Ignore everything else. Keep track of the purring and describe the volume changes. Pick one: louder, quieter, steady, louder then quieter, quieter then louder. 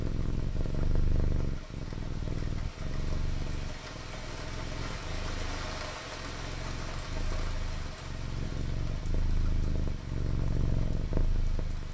quieter then louder.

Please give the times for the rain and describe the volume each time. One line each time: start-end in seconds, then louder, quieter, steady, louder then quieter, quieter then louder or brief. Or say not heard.
0.0-11.9 louder then quieter.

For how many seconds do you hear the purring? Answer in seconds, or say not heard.
12 s.